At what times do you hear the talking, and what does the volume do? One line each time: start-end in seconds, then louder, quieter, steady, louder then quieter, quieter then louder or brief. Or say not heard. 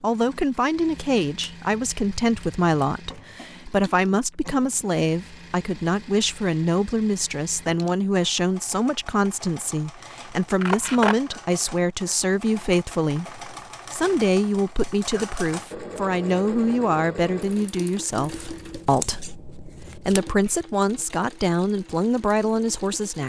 0.0-23.2 steady.